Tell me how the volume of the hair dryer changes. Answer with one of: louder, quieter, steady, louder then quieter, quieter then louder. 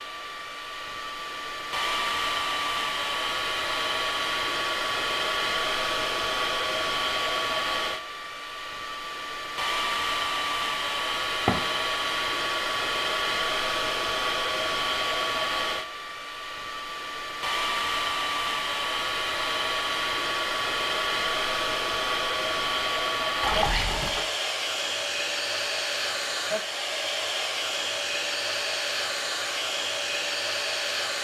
steady.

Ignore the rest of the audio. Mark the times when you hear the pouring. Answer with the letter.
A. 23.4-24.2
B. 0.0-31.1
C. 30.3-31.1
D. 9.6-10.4
A.